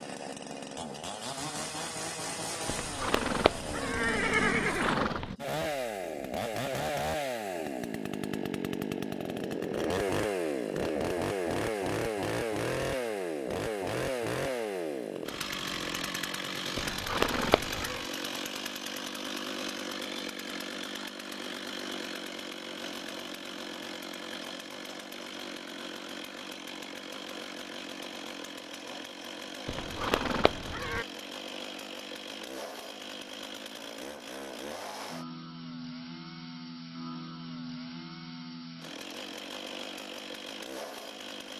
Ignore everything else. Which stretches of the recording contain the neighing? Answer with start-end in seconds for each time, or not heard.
2.6-5.3, 16.8-18.1, 29.6-31.1.